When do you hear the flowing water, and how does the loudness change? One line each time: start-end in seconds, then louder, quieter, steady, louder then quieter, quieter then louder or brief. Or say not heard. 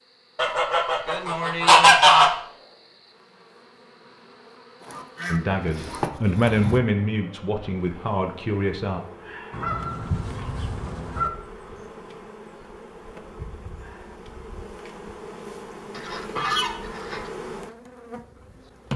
not heard.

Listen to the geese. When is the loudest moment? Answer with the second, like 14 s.
2 s.